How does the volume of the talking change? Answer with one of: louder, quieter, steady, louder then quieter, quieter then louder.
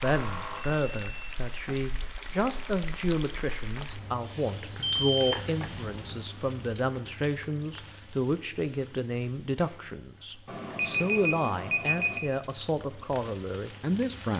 steady.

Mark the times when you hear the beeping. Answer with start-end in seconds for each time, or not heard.
0.0-1.4, 4.8-6.2, 10.4-12.2.